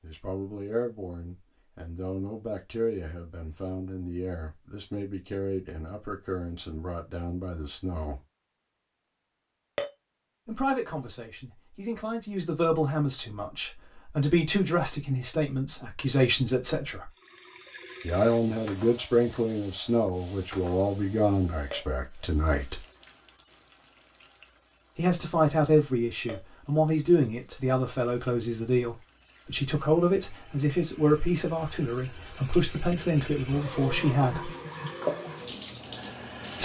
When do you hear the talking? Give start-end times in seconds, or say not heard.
0.0-8.2, 10.4-17.1, 18.0-22.8, 24.9-34.5.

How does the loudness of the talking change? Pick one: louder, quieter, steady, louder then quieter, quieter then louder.
louder.